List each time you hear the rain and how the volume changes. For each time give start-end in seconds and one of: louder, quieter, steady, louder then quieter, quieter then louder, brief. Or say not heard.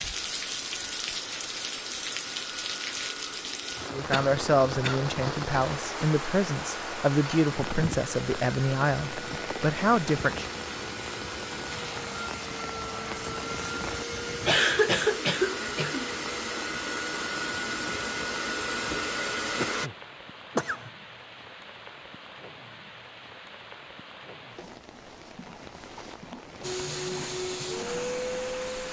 0.0-28.8 quieter.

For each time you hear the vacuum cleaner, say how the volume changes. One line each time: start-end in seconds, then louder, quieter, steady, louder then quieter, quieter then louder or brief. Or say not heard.
0.0-19.9 louder
26.6-28.8 brief.